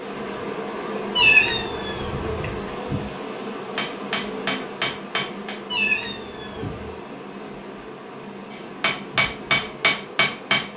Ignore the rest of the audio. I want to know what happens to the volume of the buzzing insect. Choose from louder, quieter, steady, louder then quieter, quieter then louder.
quieter.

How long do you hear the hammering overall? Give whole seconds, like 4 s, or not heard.
4 s.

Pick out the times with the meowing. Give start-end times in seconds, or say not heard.
1.1-2.5, 5.7-7.0.